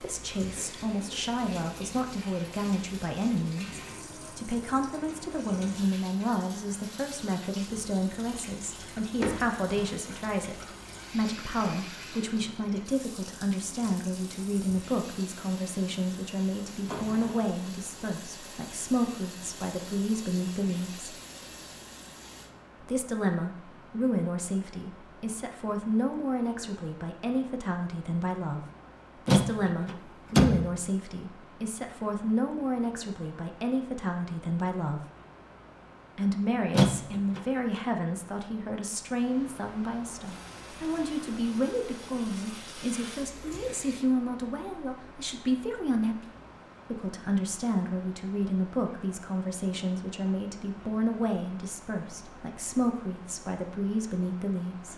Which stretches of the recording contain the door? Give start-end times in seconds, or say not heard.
9.2-9.9, 29.2-30.8, 36.7-37.4.